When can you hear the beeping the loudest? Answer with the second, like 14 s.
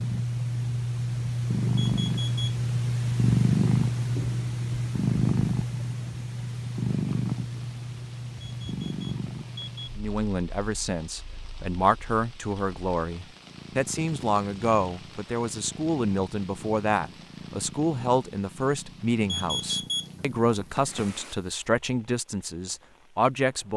20 s.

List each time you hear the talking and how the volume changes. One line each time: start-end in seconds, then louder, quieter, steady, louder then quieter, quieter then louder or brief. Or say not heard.
9.9-23.7 steady.